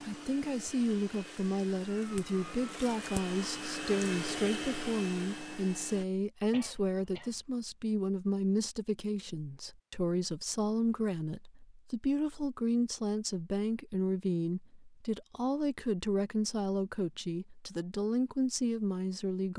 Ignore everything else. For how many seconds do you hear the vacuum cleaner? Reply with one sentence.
The vacuum cleaner can be heard for 6 seconds in total.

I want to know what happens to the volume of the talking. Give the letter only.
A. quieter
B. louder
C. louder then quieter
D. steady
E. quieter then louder
D.